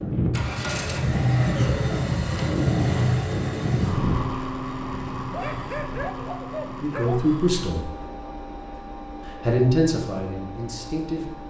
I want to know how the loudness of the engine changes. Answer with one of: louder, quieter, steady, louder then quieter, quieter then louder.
quieter.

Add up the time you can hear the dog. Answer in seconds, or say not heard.
2 s.